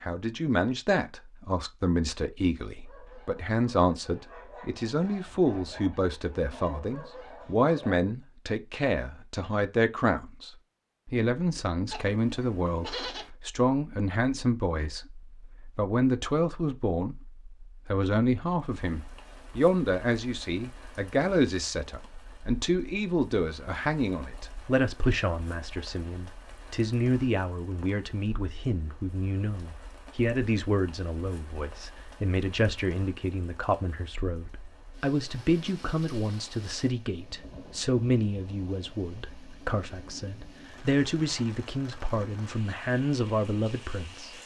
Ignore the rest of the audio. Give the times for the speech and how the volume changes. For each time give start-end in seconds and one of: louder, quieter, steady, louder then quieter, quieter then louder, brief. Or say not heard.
0.0-44.3 steady.